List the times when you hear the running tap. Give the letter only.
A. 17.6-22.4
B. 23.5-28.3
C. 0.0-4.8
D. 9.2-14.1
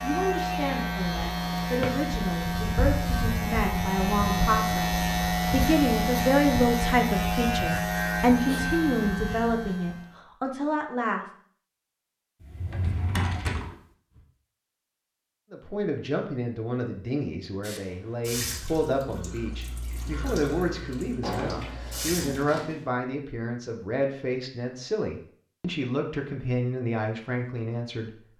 A.